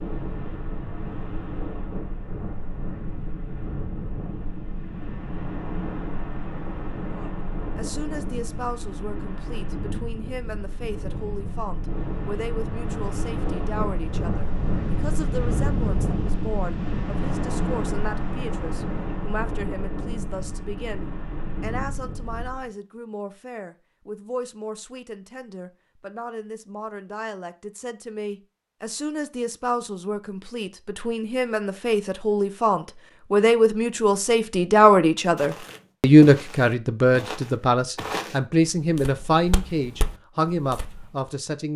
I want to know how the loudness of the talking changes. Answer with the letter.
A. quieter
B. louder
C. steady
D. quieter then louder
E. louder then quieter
B.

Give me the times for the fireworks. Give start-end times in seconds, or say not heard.
not heard.